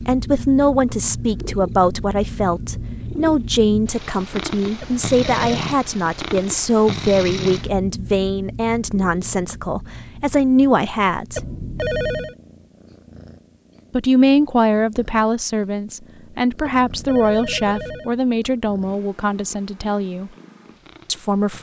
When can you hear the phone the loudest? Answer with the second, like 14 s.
12 s.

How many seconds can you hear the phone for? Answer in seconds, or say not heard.
3 s.